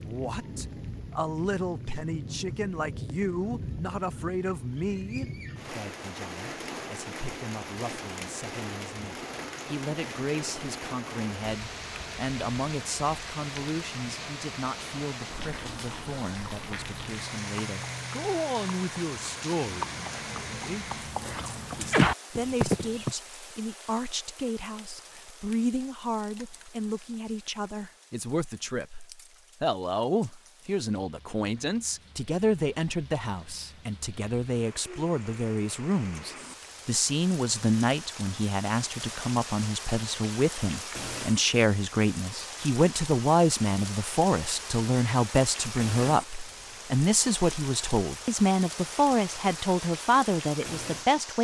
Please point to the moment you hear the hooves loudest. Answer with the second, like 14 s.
22 s.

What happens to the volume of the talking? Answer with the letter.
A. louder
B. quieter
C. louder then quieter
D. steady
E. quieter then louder
A.